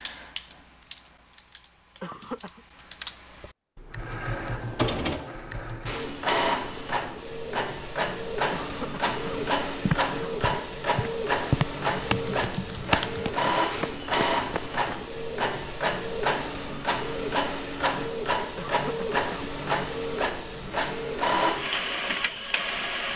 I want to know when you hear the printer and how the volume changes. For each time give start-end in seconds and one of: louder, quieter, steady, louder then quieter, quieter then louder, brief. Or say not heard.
3.9-23.1 steady.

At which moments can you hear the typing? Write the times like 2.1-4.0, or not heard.
0.0-6.0, 11.9-13.5.